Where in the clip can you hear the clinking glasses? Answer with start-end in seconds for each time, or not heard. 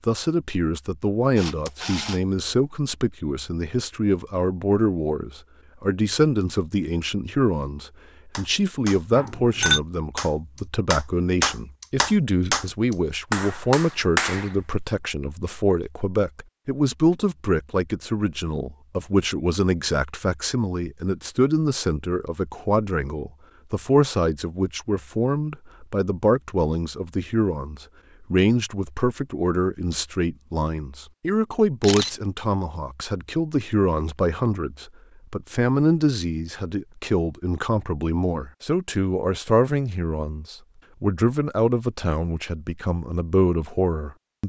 9.1-9.8.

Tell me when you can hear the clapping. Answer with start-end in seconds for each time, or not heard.
8.3-14.6.